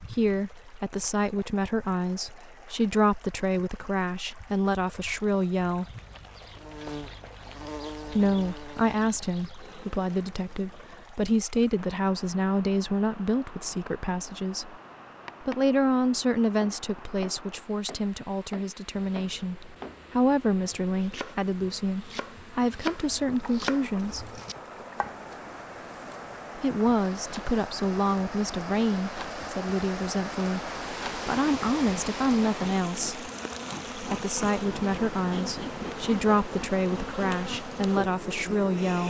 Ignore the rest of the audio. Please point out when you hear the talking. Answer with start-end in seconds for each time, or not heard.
0.0-5.8, 8.1-14.8, 15.4-24.3, 26.6-33.3, 34.0-39.0.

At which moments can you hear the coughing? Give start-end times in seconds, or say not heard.
not heard.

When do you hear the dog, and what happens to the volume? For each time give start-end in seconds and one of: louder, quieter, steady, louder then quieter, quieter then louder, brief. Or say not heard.
not heard.